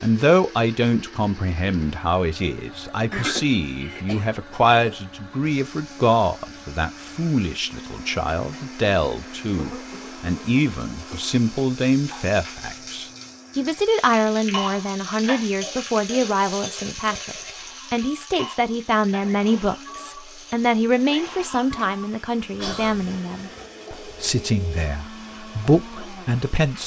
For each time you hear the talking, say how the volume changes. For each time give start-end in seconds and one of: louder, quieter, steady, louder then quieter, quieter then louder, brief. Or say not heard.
0.0-26.8 steady.